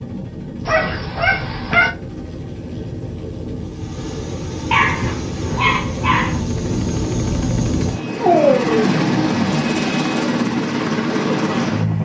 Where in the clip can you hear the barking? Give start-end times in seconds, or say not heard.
0.7-1.9, 4.7-6.4, 8.2-9.8.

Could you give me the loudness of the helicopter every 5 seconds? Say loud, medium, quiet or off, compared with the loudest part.
medium, loud, loud.